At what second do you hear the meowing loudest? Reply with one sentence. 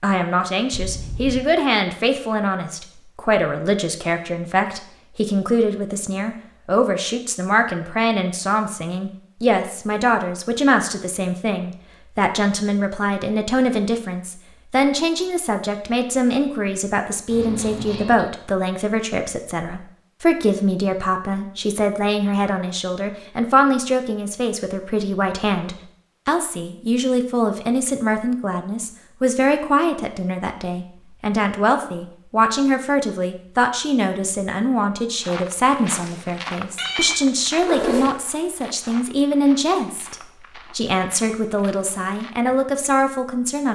The loudest moment of the meowing is at 38 seconds.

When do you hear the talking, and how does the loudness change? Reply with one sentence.
The talking can be heard from 0.0 to 43.7 s, at a steady volume.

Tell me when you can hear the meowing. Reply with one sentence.
The meowing can be heard from 0.7 to 1.4 s, from 17.3 to 18.2 s and from 36.8 to 38.1 s.